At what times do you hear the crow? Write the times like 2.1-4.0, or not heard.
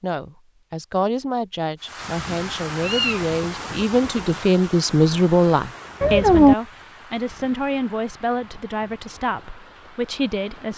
not heard.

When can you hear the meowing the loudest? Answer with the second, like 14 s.
6 s.